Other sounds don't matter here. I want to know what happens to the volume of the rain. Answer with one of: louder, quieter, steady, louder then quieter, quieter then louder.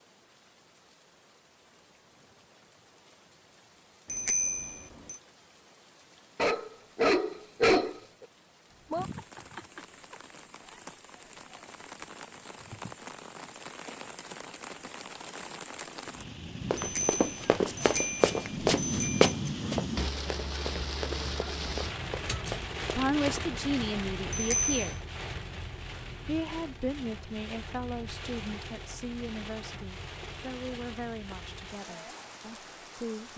louder then quieter.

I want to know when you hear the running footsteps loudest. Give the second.
19 s.